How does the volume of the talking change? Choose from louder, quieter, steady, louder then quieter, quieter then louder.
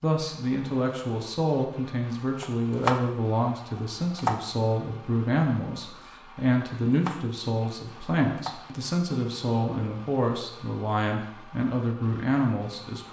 steady.